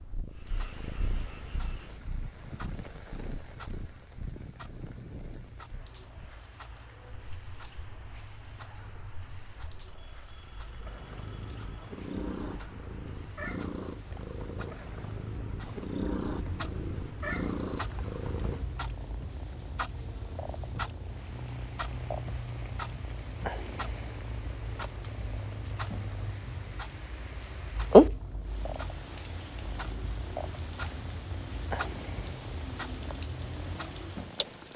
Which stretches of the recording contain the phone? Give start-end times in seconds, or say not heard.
9.8-11.9.